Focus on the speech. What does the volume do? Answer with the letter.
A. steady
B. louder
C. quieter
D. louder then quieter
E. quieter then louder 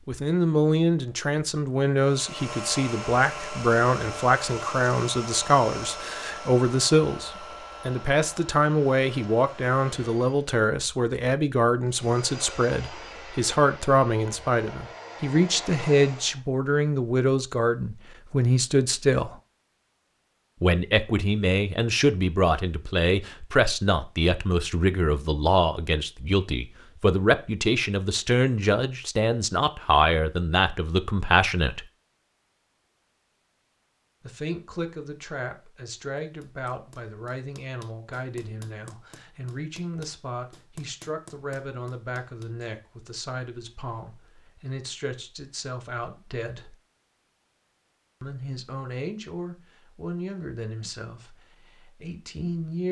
C.